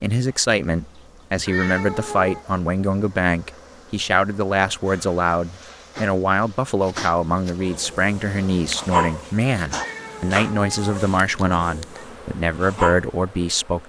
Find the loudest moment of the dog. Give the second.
9 s.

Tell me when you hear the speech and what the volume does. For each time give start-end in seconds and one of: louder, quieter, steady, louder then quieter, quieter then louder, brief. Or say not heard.
0.0-13.8 steady.